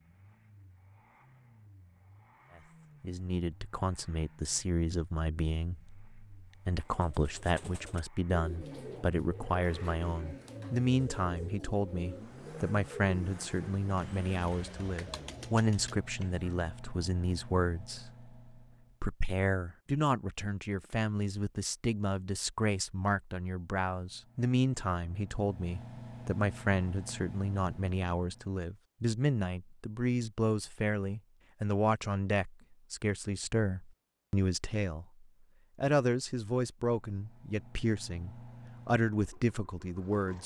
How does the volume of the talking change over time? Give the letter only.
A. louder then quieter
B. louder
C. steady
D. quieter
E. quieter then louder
C.